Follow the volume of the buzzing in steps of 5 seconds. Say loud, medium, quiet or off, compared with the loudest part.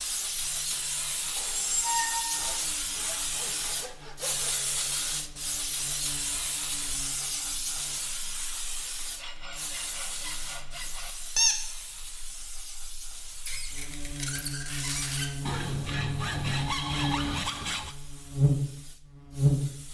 quiet, quiet, quiet, loud.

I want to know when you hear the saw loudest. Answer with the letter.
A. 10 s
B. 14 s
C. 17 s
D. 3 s
C.